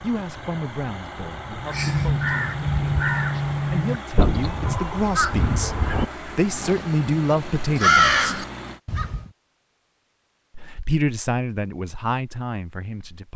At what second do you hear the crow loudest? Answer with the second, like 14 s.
8 s.